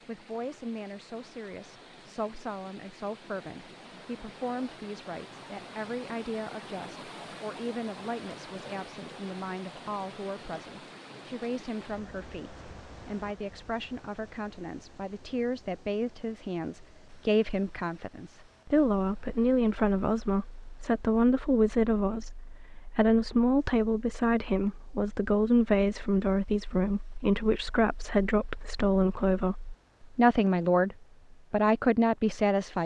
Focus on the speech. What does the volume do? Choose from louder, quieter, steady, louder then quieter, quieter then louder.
louder.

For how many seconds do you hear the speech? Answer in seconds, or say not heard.
33 s.